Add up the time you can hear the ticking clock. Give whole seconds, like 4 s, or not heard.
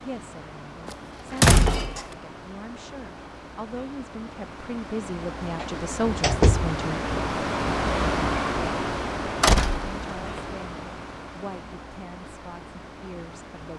not heard.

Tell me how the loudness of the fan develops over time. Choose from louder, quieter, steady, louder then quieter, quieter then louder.
louder then quieter.